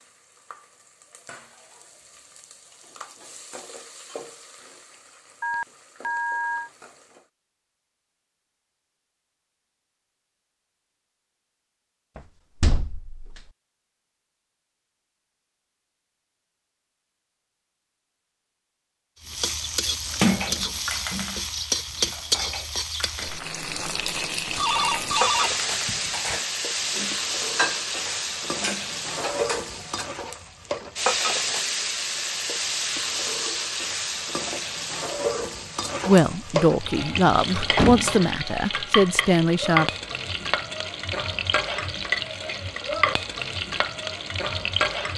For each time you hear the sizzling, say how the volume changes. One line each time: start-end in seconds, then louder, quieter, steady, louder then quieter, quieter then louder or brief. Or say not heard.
0.0-7.3 louder then quieter
19.2-45.1 steady.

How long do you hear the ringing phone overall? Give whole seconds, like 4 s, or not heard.
3 s.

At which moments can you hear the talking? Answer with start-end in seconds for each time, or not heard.
36.0-39.9.